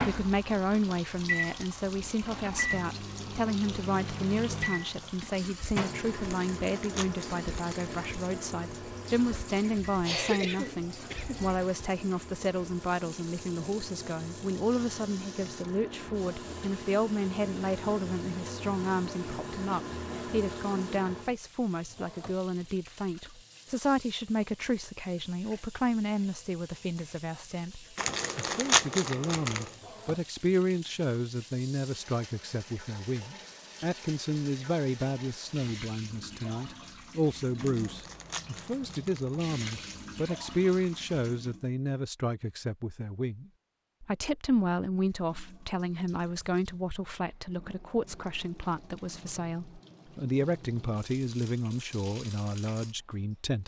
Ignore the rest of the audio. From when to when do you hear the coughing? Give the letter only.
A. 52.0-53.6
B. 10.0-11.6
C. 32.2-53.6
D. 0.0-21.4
B.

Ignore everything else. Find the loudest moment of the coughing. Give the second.
10 s.